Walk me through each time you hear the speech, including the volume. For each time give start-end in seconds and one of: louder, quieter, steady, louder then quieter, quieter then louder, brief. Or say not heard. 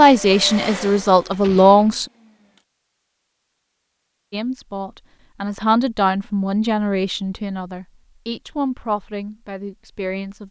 0.0-2.0 brief
4.3-10.4 quieter.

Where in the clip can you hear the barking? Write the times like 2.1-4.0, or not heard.
not heard.